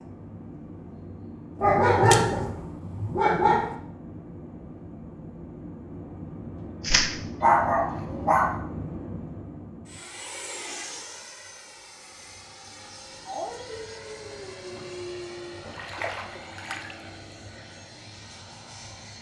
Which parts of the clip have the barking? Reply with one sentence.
You can hear the barking from 1.6 to 3.8 s, from 7.4 to 8.6 s and from 13.2 to 15.6 s.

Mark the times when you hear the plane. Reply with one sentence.
You can hear the plane from 0.0 to 19.1 s.